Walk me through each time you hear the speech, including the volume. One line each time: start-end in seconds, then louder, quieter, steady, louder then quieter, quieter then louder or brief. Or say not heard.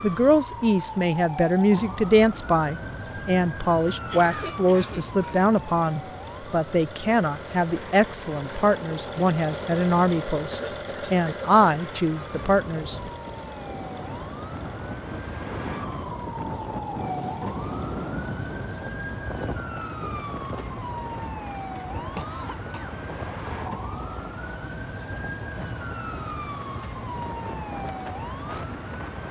0.0-13.0 steady.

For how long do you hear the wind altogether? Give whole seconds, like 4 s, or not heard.
17 s.